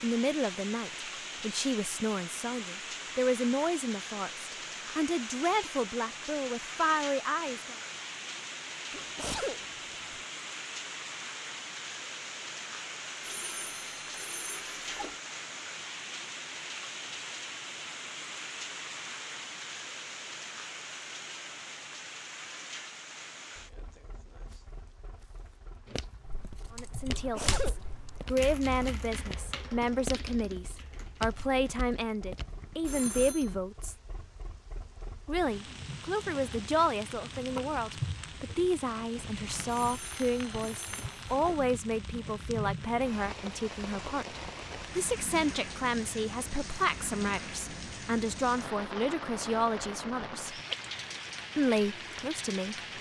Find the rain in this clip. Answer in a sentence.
You can hear the rain from 0.0 to 52.9 s.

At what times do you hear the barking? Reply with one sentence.
The barking can't be heard in this clip.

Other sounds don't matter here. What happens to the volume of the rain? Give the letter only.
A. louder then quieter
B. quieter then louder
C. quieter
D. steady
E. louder
B.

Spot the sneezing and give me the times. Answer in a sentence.
You can hear the sneezing from 8.9 to 10.2 s and from 27.1 to 28.4 s.